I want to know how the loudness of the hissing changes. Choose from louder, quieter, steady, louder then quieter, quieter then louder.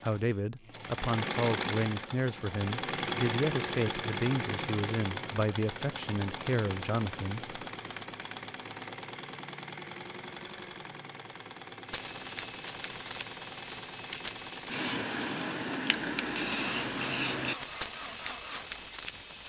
louder then quieter.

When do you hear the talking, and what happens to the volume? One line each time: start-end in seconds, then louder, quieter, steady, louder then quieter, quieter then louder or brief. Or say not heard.
0.0-7.5 steady.